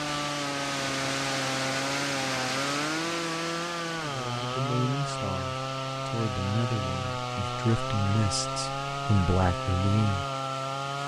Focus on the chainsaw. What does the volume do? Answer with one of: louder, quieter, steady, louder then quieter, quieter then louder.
steady.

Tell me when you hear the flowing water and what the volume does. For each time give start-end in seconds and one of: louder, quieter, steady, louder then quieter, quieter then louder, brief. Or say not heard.
0.0-11.0 quieter.